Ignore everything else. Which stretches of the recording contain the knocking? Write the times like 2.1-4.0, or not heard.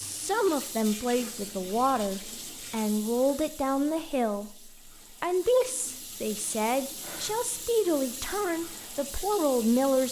not heard.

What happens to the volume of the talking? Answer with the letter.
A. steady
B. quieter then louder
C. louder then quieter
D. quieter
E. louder
A.